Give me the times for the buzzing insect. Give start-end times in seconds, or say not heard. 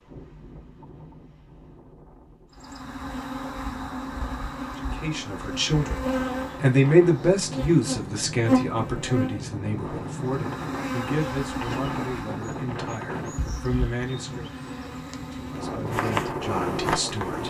2.5-17.4.